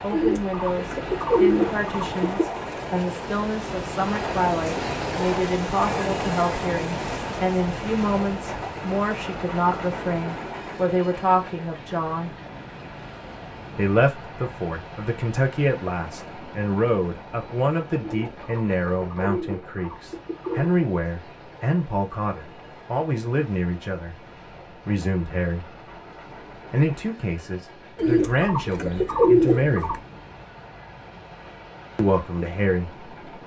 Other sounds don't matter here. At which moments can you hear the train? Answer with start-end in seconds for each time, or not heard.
0.0-33.4.